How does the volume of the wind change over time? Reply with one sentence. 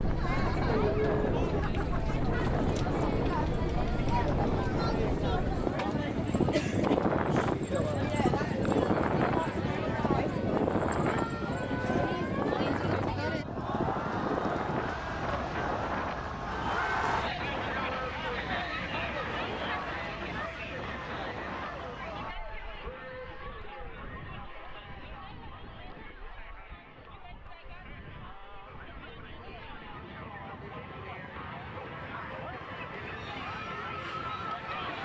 The volume of the wind goes down.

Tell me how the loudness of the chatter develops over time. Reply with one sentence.
The loudness of the chatter goes down.